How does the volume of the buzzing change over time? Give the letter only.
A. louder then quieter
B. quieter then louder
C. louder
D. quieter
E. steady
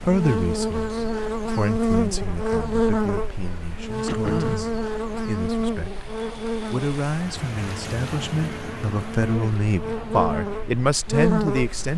B.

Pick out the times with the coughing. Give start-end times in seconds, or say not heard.
4.0-4.8.